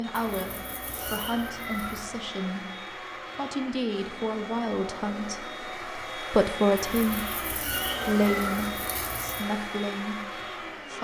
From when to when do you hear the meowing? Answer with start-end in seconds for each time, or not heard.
0.1-2.1, 6.8-9.4.